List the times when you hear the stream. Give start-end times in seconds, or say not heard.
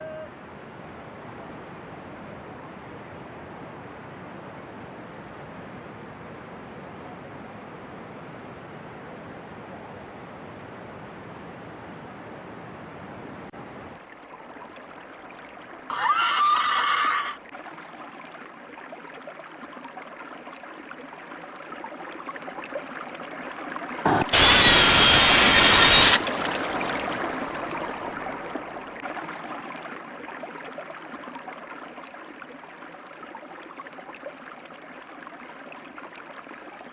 0.0-36.8.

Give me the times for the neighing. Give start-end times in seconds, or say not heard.
15.9-17.4.